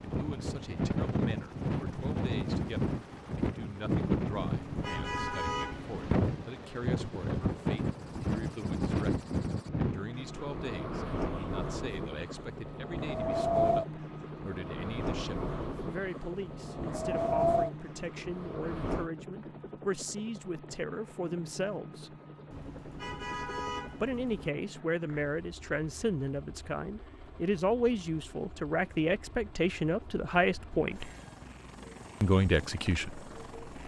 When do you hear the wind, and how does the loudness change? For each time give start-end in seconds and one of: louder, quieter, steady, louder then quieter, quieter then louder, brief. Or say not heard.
0.0-19.1 steady.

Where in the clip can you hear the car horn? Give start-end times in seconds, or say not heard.
4.4-6.1, 22.5-24.5.